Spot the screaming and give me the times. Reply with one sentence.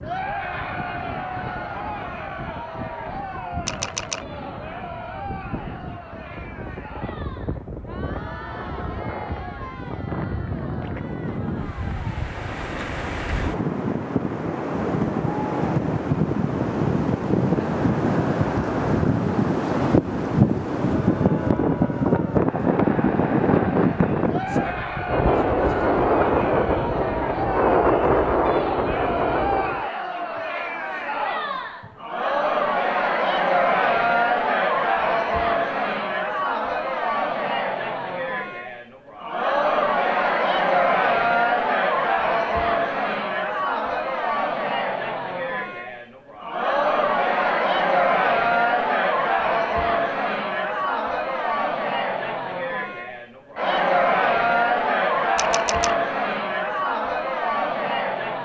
The screaming can't be heard in this clip.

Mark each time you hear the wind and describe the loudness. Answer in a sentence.
The wind can be heard from 0.0 to 29.9 s, getting louder.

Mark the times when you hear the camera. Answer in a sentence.
The camera can be heard from 3.6 to 4.2 s and from 55.4 to 56.0 s.